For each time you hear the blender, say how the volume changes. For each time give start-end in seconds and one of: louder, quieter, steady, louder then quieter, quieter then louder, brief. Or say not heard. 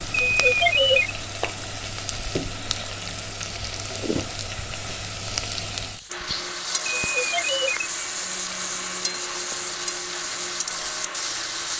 6.0-11.7 steady.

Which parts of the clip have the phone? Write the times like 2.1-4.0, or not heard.
0.2-1.1, 6.9-7.9.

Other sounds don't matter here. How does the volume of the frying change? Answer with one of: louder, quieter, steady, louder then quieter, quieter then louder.
steady.